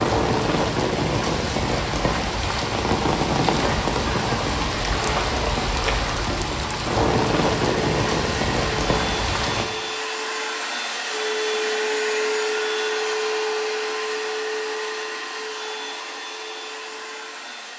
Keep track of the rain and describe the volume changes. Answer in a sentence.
The loudness of the rain stays about the same.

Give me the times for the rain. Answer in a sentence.
The rain can be heard from 0.0 to 9.7 s.